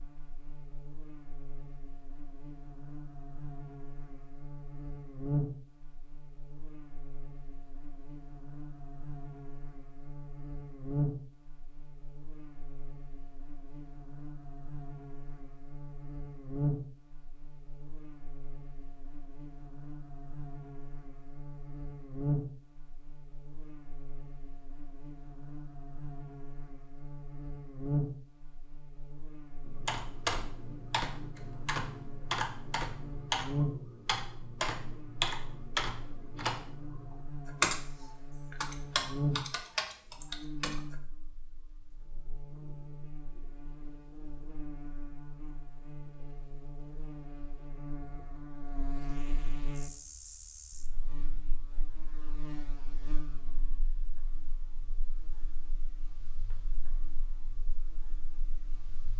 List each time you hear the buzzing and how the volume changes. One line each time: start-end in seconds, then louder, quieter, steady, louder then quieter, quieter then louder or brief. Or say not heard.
0.0-59.1 quieter.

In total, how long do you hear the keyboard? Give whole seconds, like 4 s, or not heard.
11 s.